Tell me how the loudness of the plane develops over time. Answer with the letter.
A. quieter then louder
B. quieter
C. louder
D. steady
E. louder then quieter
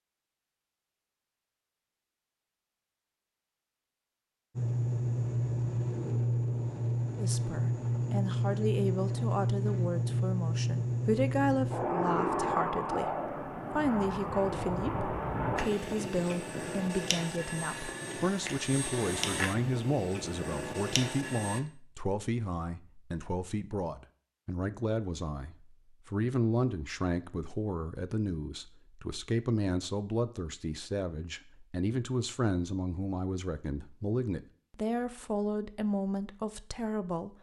B.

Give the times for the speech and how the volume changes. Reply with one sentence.
The speech can be heard from 7.2 to 37.3 s, at a steady volume.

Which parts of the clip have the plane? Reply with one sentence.
You can hear the plane from 4.5 to 21.6 s.